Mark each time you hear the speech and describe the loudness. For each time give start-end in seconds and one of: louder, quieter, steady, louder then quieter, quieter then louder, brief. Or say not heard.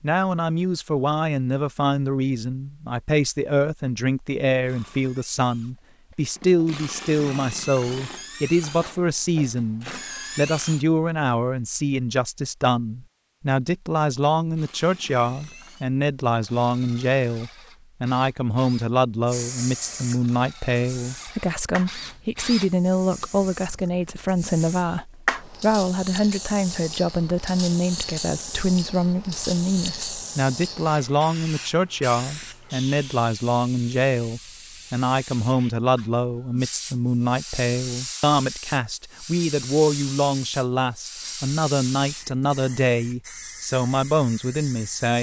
0.0-45.1 steady.